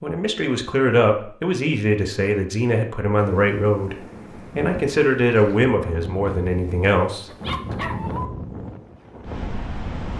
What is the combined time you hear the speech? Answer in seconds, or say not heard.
8 s.